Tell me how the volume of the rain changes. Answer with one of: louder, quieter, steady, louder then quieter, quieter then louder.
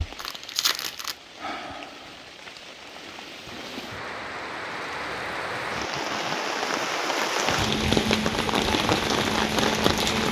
louder.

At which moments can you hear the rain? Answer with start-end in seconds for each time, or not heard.
0.0-10.2.